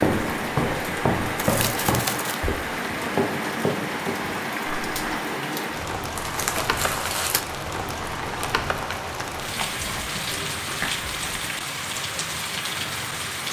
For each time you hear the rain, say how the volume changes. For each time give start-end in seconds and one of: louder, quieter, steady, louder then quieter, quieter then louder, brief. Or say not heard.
0.0-13.4 steady.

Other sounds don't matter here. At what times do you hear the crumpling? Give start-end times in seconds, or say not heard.
1.4-2.4, 6.2-7.5, 9.6-11.5.